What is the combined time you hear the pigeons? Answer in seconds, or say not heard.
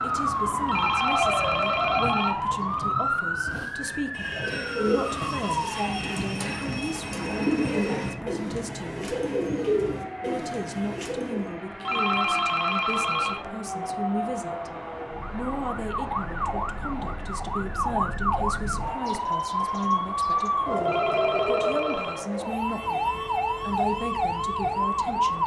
8 s.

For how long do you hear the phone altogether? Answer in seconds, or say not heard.
5 s.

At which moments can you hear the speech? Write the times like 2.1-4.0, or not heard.
0.0-9.1, 10.2-14.7, 15.3-25.4.